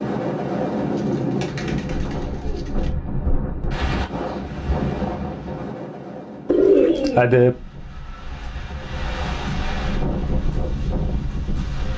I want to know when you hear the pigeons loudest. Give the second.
7 s.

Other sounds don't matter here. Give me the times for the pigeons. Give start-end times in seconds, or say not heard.
0.9-3.0, 6.5-7.5.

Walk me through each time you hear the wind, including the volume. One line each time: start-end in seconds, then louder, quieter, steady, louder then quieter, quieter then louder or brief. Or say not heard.
0.0-11.9 quieter then louder.